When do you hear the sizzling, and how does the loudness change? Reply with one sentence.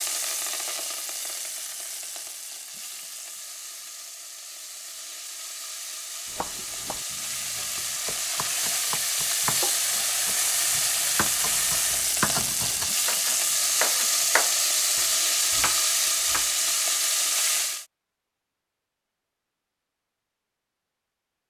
You can hear the sizzling from 0.0 to 17.9 s, getting louder.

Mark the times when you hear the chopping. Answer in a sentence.
The chopping can be heard from 6.2 to 16.8 s.